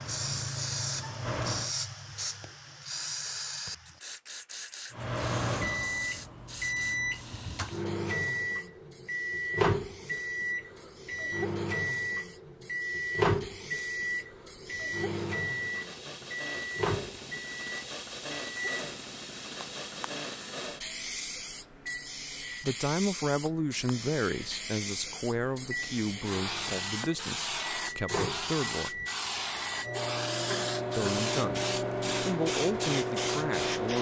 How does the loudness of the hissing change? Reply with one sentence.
The volume of the hissing goes down, then up.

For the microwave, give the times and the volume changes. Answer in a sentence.
The microwave can be heard briefly from 0.0 to 1.7 s; and from 4.9 to 33.9 s, getting quieter then louder.